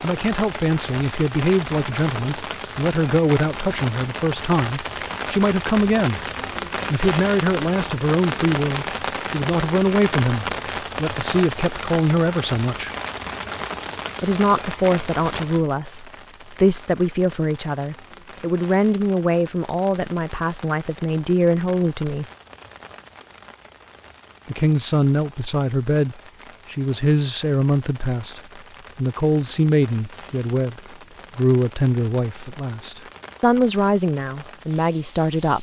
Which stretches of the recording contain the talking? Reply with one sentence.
The talking can be heard from 0.0 to 6.2 s, from 6.9 to 12.9 s, from 14.2 to 22.2 s and from 24.4 to 35.5 s.